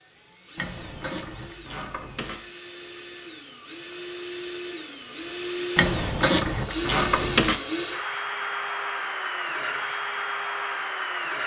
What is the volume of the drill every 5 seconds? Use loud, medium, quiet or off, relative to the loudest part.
medium, loud, loud.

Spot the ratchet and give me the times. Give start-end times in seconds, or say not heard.
0.6-2.4, 5.8-7.6.